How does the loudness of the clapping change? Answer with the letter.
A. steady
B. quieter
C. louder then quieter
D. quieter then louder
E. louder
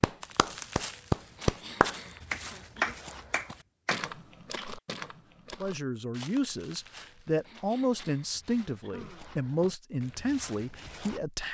B.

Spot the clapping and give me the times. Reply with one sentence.
You can hear the clapping from 0.0 to 4.7 s.